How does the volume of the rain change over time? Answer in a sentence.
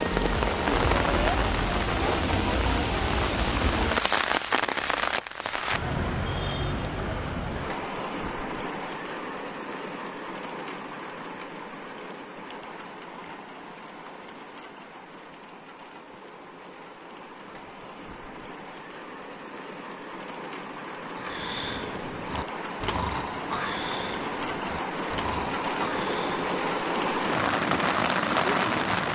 The loudness of the rain goes down, then up.